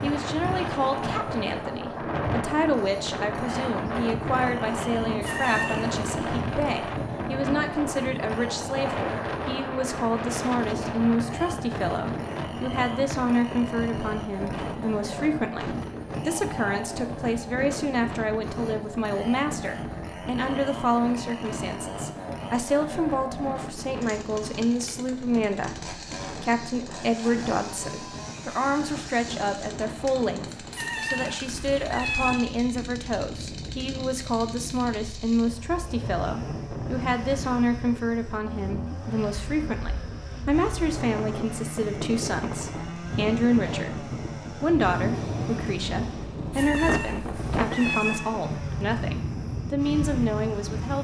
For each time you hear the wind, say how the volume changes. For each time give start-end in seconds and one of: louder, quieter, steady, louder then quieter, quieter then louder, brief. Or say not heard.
0.0-50.9 quieter then louder.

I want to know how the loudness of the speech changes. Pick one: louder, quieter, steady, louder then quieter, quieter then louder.
steady.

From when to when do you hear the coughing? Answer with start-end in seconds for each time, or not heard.
not heard.